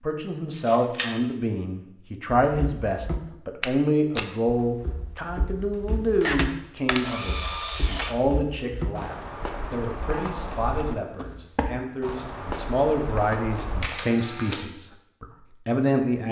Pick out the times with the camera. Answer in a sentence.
You can hear the camera from 0.5 to 1.1 s, from 6.2 to 8.2 s and from 13.8 to 14.7 s.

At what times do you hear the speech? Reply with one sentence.
The speech can be heard from 0.0 to 16.2 s.